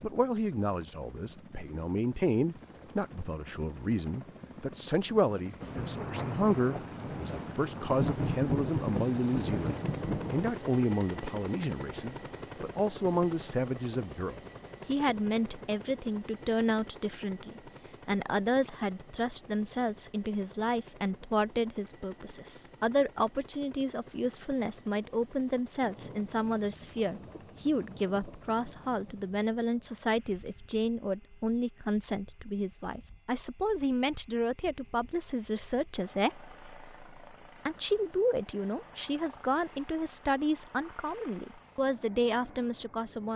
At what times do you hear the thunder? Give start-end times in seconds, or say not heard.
5.6-10.6, 25.8-29.3.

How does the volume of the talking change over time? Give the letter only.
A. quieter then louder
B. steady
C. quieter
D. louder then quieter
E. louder
B.